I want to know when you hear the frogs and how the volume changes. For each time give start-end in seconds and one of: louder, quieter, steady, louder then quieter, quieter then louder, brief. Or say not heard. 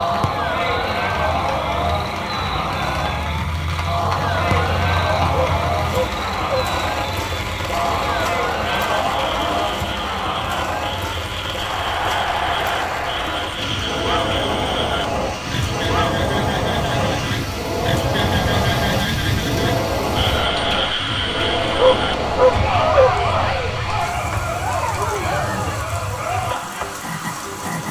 0.0-27.8 louder then quieter.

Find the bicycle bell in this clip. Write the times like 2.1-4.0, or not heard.
not heard.